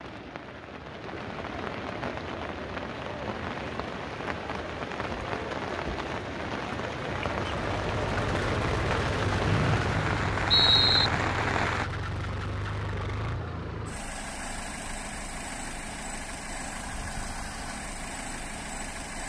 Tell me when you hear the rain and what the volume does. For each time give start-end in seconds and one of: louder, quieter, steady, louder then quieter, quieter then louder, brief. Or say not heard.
0.0-11.9 louder.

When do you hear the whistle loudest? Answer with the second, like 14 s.
11 s.